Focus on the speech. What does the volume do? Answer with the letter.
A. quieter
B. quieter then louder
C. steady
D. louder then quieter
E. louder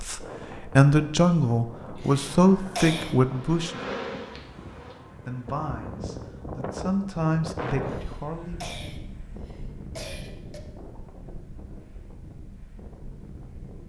A.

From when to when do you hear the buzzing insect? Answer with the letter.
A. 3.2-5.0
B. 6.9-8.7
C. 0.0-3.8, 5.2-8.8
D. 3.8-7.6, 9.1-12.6
A.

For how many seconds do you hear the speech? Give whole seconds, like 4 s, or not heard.
7 s.